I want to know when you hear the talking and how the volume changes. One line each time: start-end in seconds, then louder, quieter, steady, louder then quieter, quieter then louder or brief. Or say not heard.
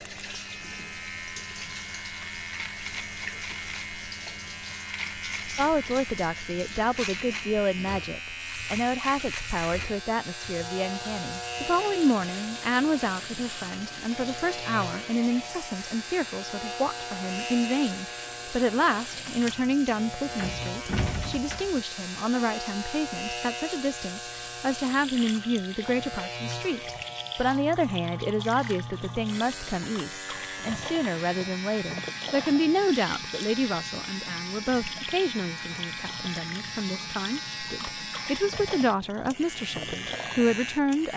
5.5-41.1 steady.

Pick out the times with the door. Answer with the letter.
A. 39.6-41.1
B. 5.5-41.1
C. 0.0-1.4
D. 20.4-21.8
D.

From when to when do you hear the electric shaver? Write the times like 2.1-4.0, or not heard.
0.0-41.1.